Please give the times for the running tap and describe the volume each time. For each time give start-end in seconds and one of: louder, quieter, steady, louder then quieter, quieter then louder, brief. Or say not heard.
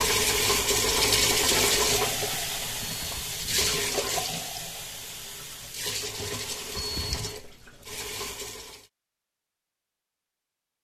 0.0-8.8 quieter.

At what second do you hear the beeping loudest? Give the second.
7 s.